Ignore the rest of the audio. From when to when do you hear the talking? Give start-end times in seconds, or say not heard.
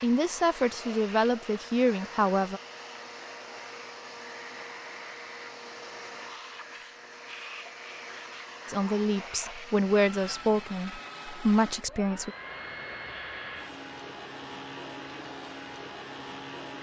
0.0-2.6, 8.7-12.3.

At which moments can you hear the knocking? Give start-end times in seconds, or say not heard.
not heard.